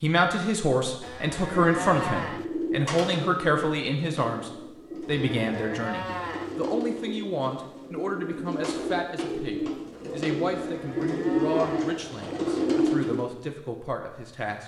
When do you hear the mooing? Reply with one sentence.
You can hear the mooing from 1.0 to 2.5 s, from 5.0 to 6.5 s and from 10.6 to 11.9 s.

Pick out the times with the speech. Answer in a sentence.
You can hear the speech from 0.0 to 14.6 s.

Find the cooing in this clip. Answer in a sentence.
You can hear the cooing from 1.5 to 13.2 s.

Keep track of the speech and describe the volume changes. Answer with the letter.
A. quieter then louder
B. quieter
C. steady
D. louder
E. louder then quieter
B.